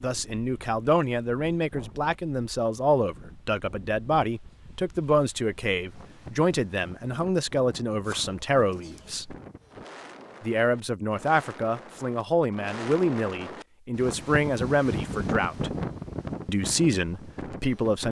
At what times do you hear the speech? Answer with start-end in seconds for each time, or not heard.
0.0-9.3, 10.4-15.7, 16.4-18.0.